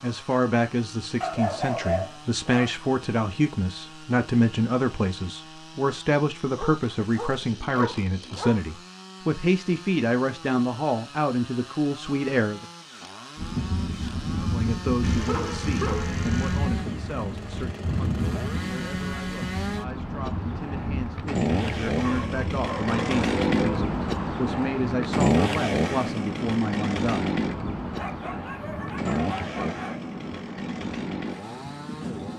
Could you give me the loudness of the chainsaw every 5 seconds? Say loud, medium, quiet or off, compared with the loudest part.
quiet, quiet, quiet, medium, loud, loud, medium.